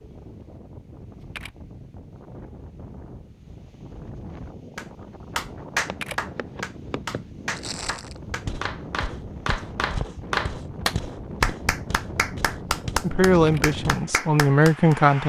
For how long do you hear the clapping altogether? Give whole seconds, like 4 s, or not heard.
10 s.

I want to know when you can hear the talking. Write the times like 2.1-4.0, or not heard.
13.0-15.2.